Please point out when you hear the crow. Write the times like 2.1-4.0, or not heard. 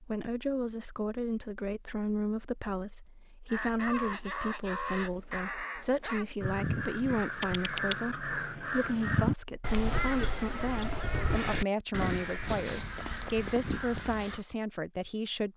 3.5-14.4.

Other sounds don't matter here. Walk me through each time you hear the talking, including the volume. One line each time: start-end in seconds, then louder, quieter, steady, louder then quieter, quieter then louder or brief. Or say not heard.
0.0-15.5 steady.